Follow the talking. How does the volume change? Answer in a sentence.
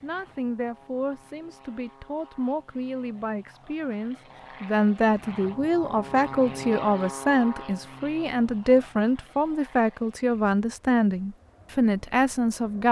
The loudness of the talking goes up.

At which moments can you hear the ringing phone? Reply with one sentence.
You can't hear the ringing phone here.